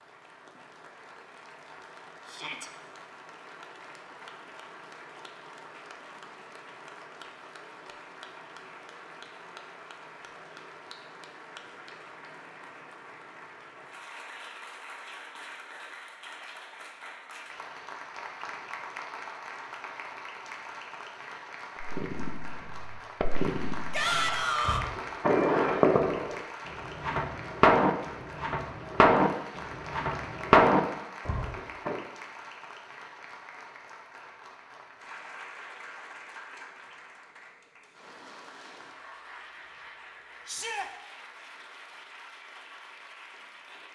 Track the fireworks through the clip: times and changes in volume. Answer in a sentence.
You can hear the fireworks from 21.8 to 32.0 s, getting louder.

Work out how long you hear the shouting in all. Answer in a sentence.
The shouting can be heard for 2 seconds in total.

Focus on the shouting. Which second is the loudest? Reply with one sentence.
The loudest moment of the shouting is at 24 seconds.